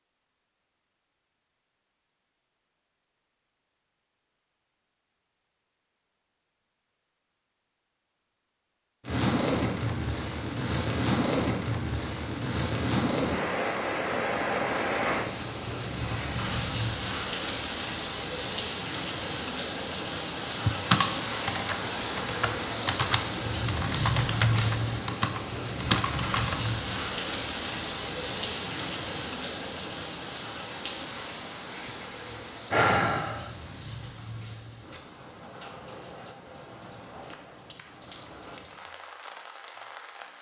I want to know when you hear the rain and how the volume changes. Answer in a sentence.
You can hear the rain from 9.1 to 40.3 s, getting quieter.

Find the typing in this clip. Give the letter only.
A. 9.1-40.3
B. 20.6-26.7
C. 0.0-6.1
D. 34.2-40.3
B.